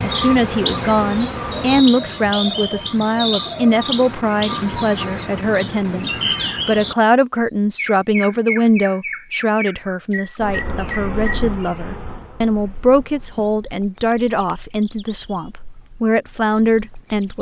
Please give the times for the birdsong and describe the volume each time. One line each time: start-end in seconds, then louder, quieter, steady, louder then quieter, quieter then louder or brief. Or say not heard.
0.0-17.3 quieter.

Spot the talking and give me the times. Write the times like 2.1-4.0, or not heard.
0.0-17.3.